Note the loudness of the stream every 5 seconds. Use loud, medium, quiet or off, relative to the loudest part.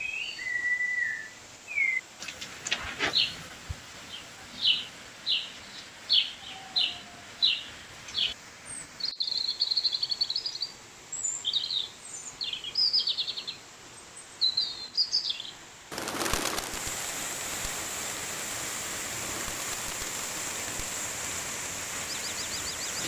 quiet, quiet, quiet, loud, loud.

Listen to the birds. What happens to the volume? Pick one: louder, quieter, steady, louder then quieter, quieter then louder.
quieter.